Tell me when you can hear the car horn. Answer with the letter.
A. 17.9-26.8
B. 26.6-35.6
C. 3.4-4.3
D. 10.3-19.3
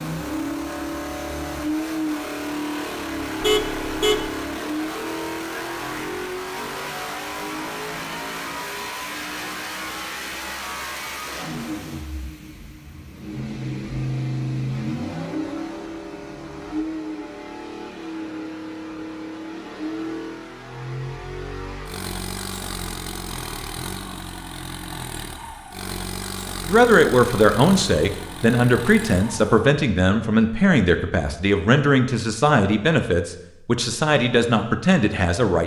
C.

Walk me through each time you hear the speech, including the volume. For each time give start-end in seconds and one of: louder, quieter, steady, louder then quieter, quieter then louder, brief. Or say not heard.
26.6-35.6 steady.